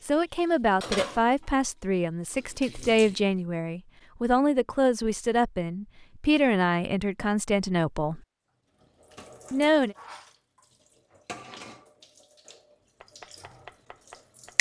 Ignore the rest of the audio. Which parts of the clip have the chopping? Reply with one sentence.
The chopping can be heard from 13.0 to 14.5 s.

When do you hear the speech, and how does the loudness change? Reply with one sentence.
The speech can be heard from 0.0 to 8.2 s, at a steady volume; and briefly from 9.5 to 9.9 s.